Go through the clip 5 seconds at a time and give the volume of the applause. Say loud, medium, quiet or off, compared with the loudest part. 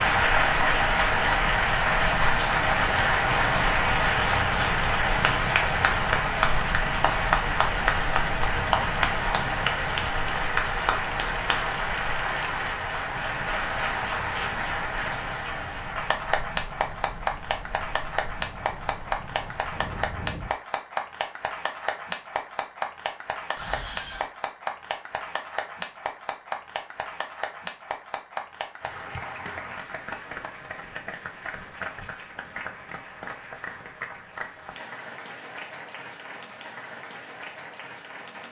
loud, loud, medium, medium, medium, quiet, quiet, quiet.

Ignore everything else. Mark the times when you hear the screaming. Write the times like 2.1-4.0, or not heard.
23.6-24.3.